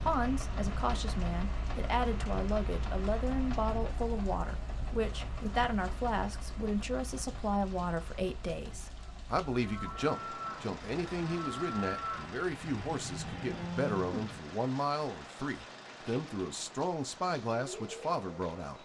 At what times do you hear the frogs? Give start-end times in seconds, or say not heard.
not heard.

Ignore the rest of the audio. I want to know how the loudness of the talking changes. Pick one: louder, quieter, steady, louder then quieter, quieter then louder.
steady.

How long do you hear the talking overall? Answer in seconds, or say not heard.
19 s.